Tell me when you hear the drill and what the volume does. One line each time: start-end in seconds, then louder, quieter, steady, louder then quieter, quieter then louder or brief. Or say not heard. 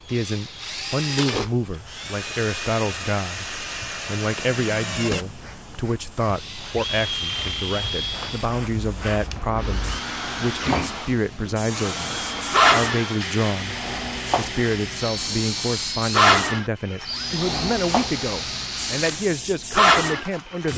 0.0-20.7 steady.